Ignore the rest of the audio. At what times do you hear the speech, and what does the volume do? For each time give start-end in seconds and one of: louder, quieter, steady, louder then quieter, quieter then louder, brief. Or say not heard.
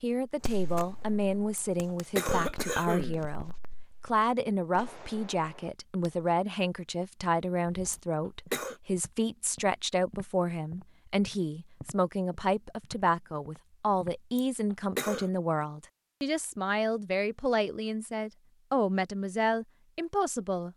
0.0-20.7 steady.